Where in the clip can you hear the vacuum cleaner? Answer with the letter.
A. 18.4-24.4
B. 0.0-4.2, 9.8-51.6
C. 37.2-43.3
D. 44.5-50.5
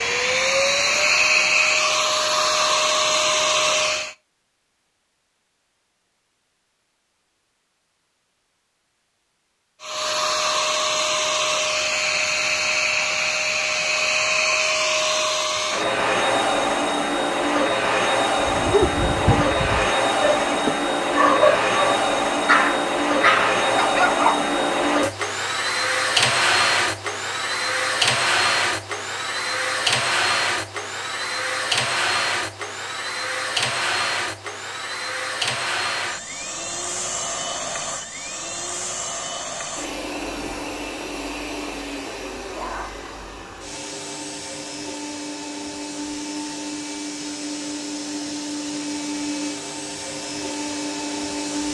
B.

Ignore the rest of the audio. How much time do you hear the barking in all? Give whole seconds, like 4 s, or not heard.
6 s.